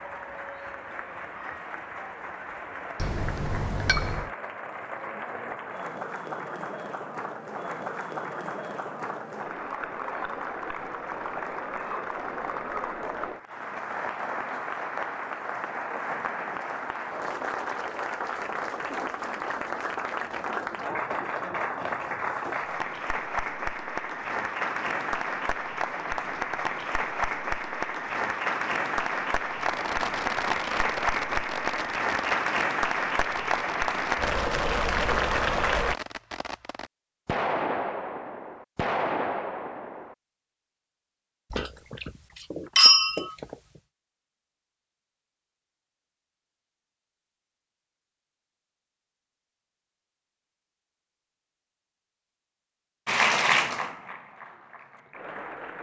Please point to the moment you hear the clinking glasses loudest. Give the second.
43 s.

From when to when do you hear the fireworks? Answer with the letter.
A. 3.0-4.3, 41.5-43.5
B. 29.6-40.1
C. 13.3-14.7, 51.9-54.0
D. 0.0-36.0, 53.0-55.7
B.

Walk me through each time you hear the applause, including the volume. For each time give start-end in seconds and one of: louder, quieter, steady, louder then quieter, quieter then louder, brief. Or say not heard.
0.0-36.0 louder
53.0-55.7 brief.